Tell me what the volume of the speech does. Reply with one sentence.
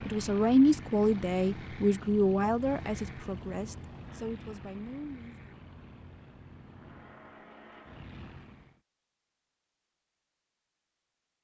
The loudness of the speech goes down.